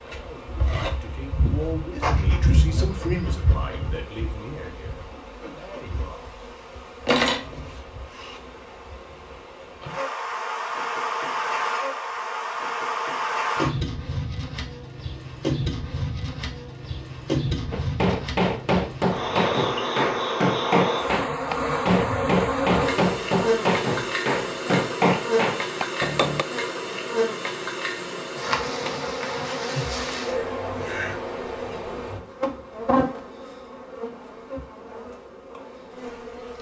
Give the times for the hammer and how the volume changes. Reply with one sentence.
You can hear the hammer from 17.7 to 26.4 s, at a steady volume.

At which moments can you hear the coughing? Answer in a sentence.
The coughing can't be heard in this clip.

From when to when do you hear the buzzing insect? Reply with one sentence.
The buzzing insect can be heard from 0.0 to 36.5 s.